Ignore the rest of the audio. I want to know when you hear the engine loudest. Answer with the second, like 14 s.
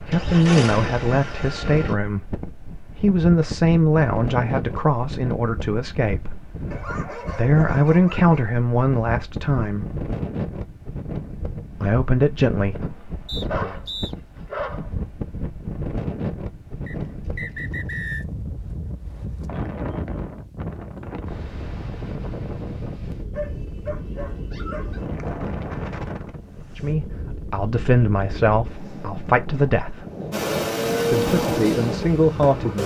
31 s.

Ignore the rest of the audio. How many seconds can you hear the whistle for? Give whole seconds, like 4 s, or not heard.
2 s.